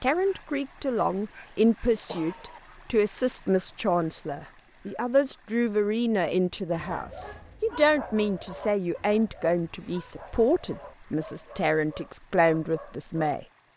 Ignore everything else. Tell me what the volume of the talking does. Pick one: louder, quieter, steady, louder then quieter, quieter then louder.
steady.